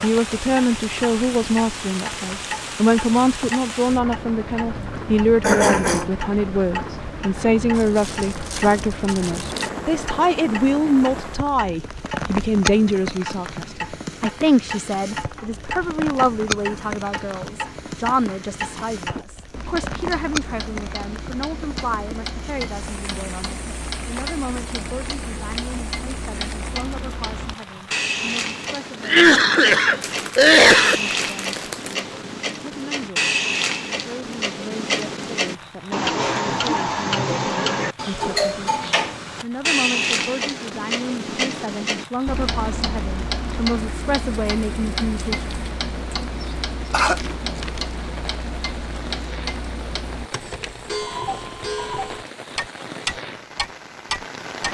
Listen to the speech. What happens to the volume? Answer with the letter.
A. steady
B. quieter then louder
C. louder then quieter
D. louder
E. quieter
B.